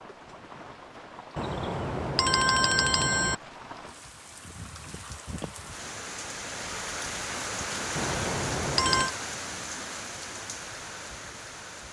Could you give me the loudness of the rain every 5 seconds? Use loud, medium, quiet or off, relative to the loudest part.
medium, loud, medium.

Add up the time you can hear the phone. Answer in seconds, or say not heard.
3 s.